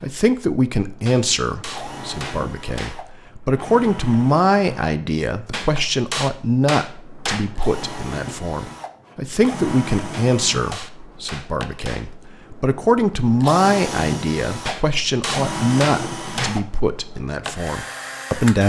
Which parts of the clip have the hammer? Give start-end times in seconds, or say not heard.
1.1-3.0, 5.5-7.5, 10.1-12.1, 14.7-16.6.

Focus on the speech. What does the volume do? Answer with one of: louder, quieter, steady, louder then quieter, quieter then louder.
steady.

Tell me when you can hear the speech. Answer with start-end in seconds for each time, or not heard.
0.0-18.6.